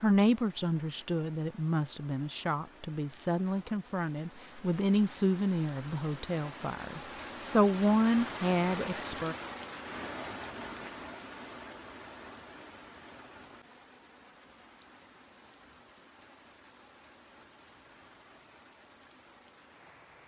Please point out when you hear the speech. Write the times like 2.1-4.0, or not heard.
0.0-9.3.